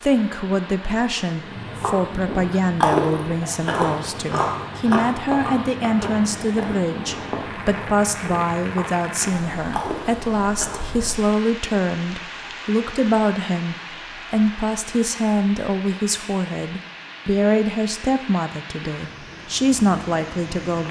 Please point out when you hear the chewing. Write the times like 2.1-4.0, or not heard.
1.4-10.8.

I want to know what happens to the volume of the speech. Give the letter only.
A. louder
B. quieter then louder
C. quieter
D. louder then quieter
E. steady
E.